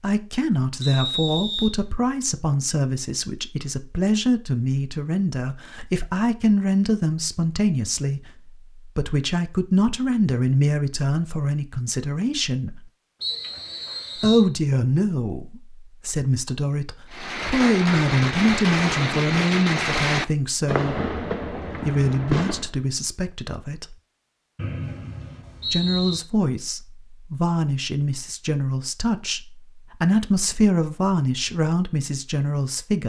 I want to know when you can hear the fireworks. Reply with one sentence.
You can hear the fireworks from 17.1 to 22.7 s.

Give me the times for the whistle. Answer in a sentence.
You can hear the whistle from 0.8 to 1.8 s, from 13.2 to 14.5 s and from 24.6 to 26.2 s.